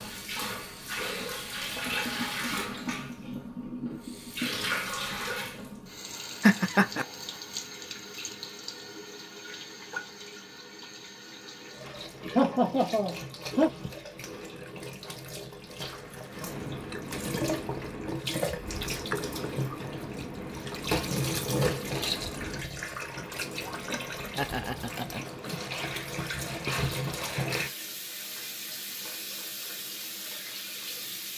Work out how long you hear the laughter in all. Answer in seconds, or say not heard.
3 s.